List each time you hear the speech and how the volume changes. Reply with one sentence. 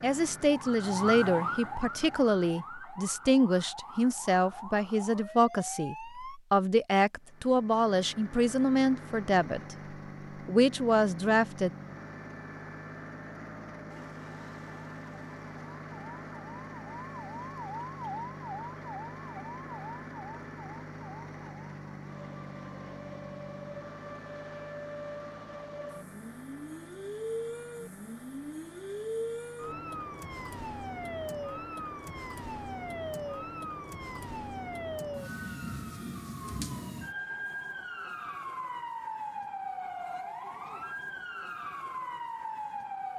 You can hear the speech from 0.0 to 11.7 s, at a steady volume.